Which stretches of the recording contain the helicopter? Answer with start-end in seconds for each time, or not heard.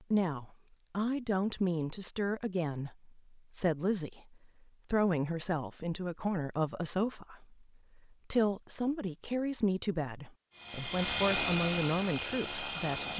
10.6-13.1.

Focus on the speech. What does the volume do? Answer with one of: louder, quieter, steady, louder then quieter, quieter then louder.
steady.